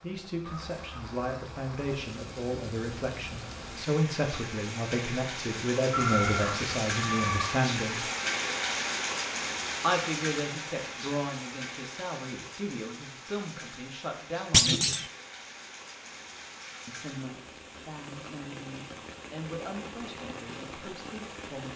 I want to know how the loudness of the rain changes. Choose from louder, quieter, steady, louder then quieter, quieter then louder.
louder then quieter.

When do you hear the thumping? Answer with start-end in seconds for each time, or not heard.
14.5-15.1.